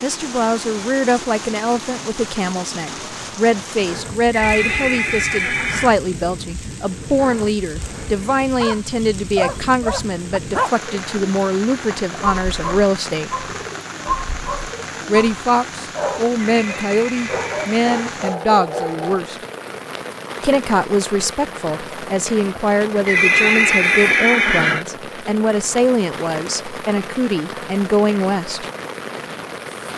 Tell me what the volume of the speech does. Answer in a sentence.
The volume of the speech stays about the same.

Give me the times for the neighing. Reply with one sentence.
You can hear the neighing from 4.3 to 6.0 s, from 16.6 to 18.1 s and from 23.1 to 24.9 s.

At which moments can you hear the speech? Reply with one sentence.
The speech can be heard from 0.0 to 13.3 s, from 15.1 to 19.4 s and from 20.4 to 28.6 s.